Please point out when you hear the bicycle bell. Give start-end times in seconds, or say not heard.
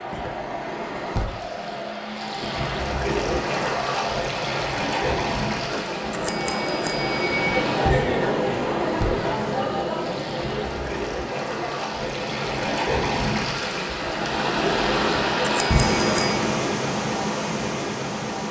5.7-7.5, 15.1-16.4.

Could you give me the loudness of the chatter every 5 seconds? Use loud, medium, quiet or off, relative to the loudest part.
medium, loud, medium, off.